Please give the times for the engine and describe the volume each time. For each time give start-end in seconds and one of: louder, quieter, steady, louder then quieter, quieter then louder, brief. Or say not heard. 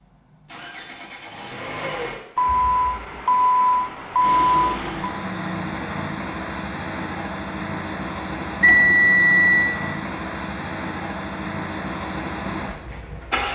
0.0-2.2 brief
4.2-13.5 steady.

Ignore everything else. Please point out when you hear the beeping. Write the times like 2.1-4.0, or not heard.
2.4-5.0, 8.6-9.8.